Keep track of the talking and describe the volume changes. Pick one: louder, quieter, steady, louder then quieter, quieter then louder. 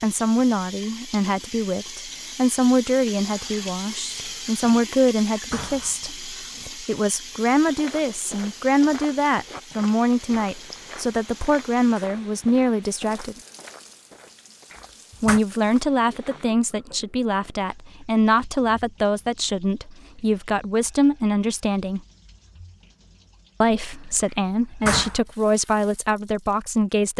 steady.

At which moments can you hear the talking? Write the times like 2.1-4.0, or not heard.
0.0-13.3, 15.2-22.0, 23.6-27.1.